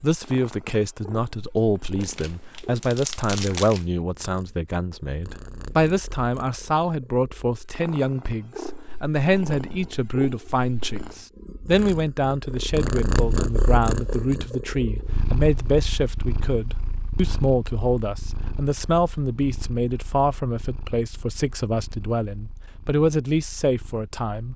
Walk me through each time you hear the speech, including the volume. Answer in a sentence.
You can hear the speech from 0.0 to 24.5 s, at a steady volume.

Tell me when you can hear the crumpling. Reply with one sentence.
You can hear the crumpling from 2.0 to 3.9 s.